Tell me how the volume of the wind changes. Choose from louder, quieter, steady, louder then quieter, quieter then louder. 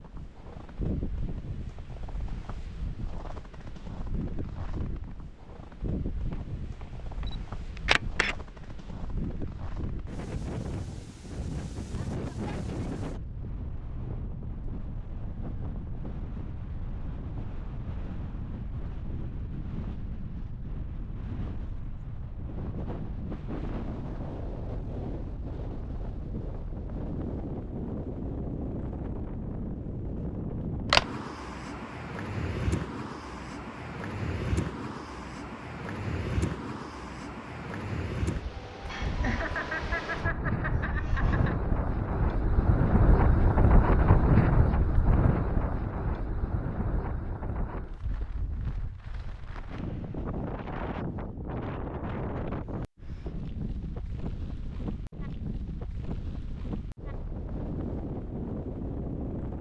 louder then quieter.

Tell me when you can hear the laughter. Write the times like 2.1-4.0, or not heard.
38.9-41.5.